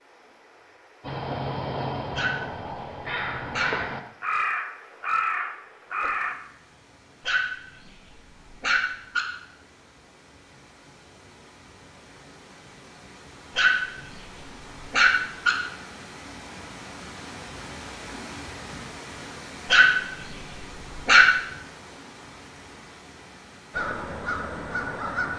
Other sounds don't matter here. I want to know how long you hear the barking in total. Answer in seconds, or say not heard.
7 s.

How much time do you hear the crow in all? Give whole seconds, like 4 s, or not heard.
7 s.